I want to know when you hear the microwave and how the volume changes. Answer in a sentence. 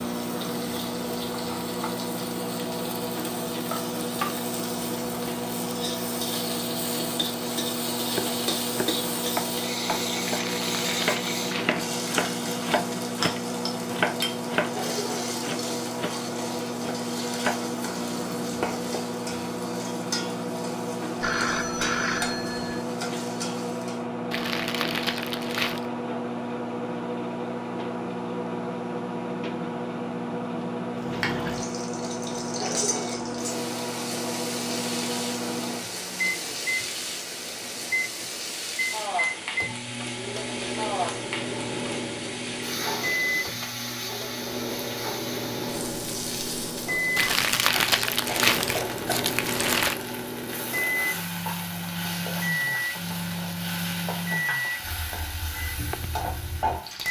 The microwave can be heard from 0.0 to 57.0 s, at a steady volume.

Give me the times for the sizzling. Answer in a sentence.
The sizzling can be heard from 0.0 to 24.1 s and from 30.9 to 57.0 s.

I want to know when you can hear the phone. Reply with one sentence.
You can hear the phone from 21.2 to 22.9 s.